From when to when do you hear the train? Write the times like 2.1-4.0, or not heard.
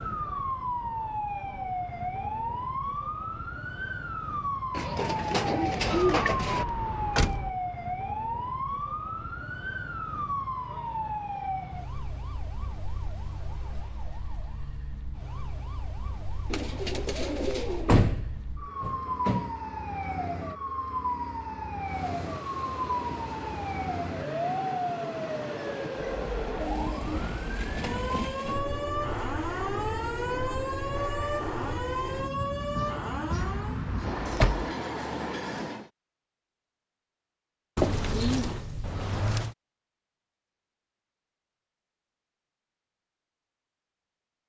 21.8-35.9.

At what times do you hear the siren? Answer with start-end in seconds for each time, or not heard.
0.0-33.9.